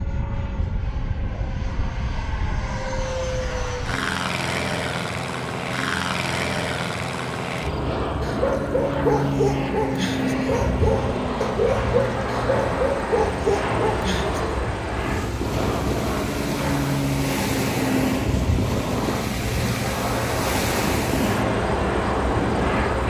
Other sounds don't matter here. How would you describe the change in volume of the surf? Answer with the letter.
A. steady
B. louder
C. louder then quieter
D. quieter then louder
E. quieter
B.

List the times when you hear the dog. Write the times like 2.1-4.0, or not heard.
8.2-14.6.